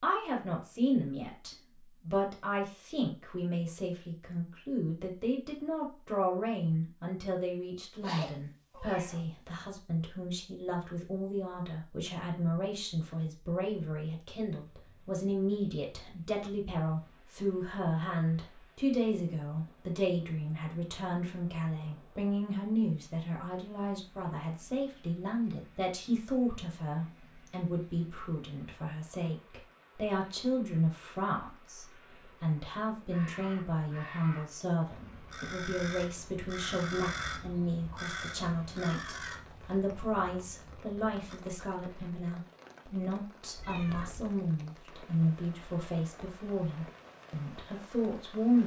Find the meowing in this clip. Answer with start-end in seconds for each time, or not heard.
8.0-9.7, 43.5-44.3.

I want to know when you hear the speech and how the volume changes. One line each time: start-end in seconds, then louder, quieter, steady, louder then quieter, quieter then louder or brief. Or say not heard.
0.0-48.6 steady.